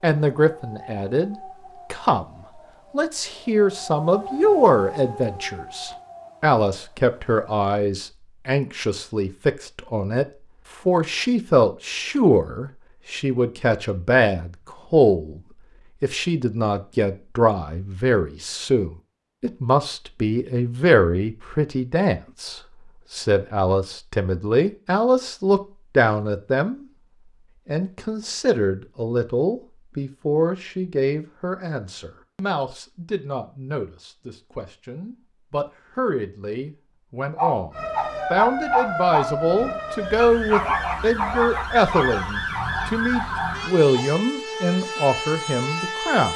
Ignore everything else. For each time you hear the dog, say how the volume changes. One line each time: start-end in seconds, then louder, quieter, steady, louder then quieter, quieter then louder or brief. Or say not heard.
37.4-44.0 quieter.